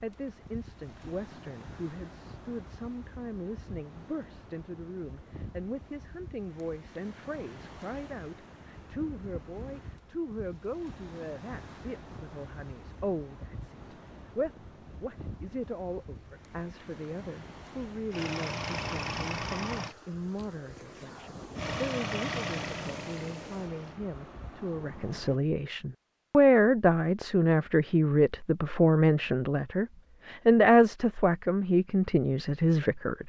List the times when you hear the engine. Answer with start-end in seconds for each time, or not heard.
18.1-19.9, 21.6-24.0.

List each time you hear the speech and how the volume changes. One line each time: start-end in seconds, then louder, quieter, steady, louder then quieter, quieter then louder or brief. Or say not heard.
0.0-33.2 louder.